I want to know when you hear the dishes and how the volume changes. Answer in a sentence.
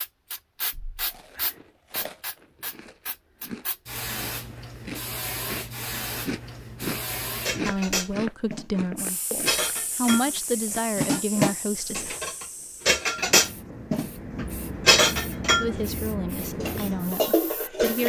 You can hear the dishes from 7.5 to 18.0 s, getting louder then quieter.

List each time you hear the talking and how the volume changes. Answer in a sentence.
The talking can be heard from 7.6 to 12.2 s, getting louder then quieter; and briefly from 15.6 to 18.0 s.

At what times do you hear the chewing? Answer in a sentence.
You can hear the chewing from 1.1 to 12.7 s.